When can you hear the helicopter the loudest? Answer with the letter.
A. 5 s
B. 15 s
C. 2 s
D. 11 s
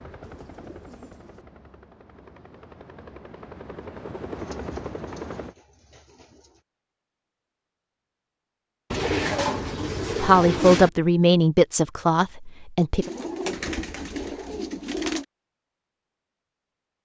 A.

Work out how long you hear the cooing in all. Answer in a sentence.
The cooing can be heard for 8 seconds in total.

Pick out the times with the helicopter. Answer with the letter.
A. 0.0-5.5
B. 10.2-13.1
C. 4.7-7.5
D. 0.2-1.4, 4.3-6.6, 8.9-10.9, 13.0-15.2
A.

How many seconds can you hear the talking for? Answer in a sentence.
The talking can be heard for 3 seconds in total.